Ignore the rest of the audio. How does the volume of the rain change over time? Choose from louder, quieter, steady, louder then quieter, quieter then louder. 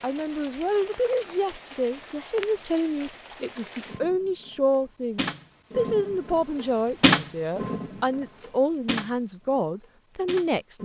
louder then quieter.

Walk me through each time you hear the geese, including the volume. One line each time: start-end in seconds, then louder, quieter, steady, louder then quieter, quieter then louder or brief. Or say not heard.
not heard.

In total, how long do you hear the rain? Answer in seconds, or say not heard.
11 s.